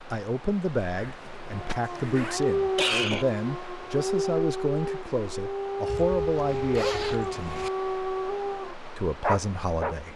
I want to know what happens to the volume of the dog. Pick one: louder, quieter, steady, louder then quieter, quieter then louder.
steady.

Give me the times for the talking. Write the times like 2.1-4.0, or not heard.
0.1-7.7, 8.9-10.1.